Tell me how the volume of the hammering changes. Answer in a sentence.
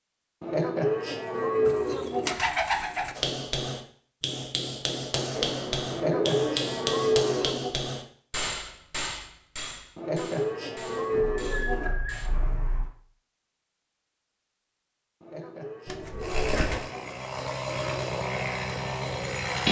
The volume of the hammering goes down.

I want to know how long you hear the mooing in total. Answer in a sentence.
The mooing can be heard for 8 seconds in total.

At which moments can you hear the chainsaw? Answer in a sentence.
You can hear the chainsaw from 16.2 to 19.6 s.